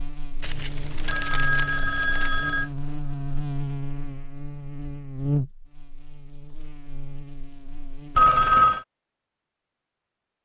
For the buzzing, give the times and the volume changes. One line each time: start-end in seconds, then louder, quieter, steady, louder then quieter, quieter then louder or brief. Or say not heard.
0.0-8.5 louder then quieter.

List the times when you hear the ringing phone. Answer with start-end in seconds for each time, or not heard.
0.4-2.7, 8.2-8.8.